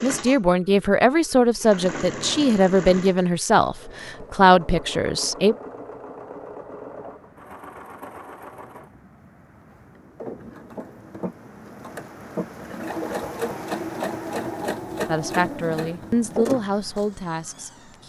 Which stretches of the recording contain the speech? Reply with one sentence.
The speech can be heard from 0.0 to 5.5 s and from 15.1 to 18.0 s.